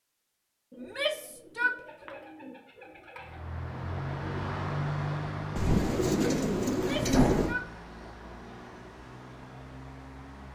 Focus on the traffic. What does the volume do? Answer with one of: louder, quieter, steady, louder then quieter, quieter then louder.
quieter.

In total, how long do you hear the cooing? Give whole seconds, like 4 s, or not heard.
5 s.